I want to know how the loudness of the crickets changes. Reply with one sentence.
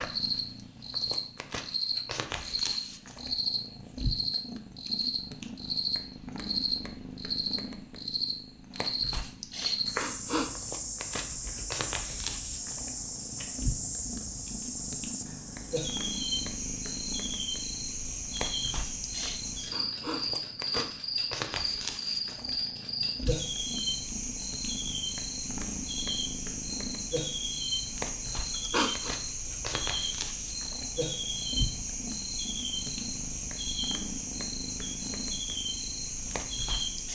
The loudness of the crickets stays about the same.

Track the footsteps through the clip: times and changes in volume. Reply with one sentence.
The footsteps can't be heard in this clip.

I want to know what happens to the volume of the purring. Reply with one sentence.
The volume of the purring stays about the same.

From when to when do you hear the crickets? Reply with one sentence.
The crickets can be heard from 0.0 to 37.1 s.